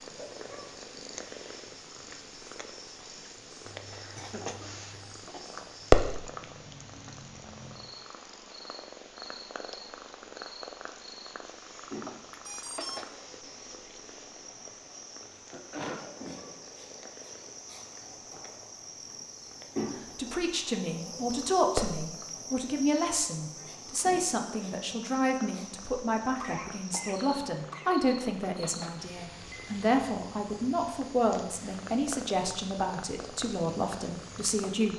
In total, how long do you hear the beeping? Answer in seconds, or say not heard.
2 s.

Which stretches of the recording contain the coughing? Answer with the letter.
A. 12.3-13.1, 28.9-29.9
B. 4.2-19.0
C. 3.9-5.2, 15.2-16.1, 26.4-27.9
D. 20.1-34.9
C.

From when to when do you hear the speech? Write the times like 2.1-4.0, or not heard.
20.1-34.9.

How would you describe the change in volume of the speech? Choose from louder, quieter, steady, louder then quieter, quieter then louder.
steady.